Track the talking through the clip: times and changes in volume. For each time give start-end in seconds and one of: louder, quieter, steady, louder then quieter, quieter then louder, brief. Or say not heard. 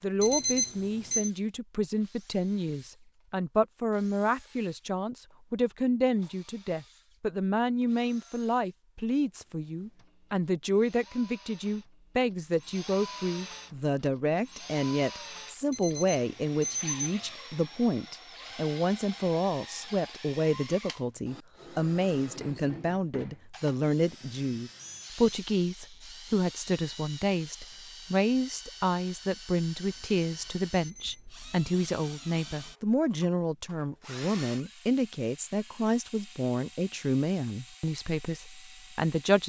0.0-39.4 steady.